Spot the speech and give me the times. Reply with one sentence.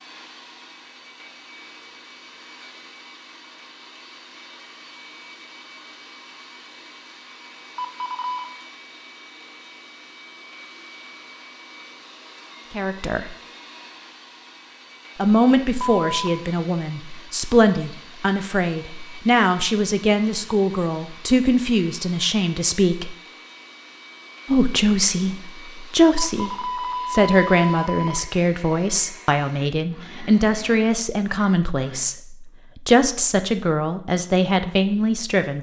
You can hear the speech from 12.7 to 13.3 s, from 15.2 to 23.1 s and from 24.4 to 35.5 s.